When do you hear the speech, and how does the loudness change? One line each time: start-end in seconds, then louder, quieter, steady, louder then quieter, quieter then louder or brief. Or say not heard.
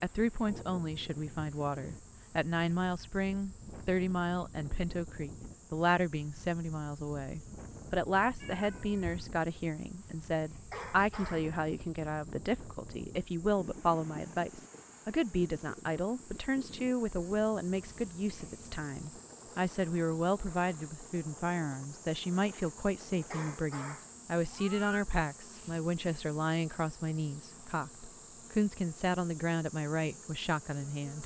0.0-31.2 steady.